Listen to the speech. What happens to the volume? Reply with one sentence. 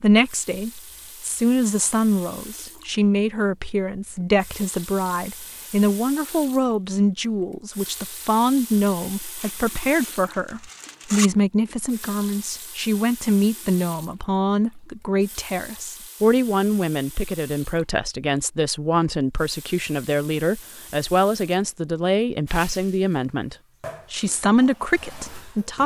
The loudness of the speech stays about the same.